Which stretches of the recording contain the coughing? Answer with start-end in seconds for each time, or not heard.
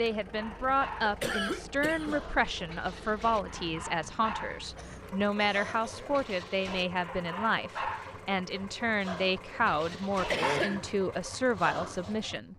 1.0-2.2, 4.7-6.2, 10.3-10.9.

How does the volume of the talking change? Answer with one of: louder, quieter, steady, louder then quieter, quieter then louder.
steady.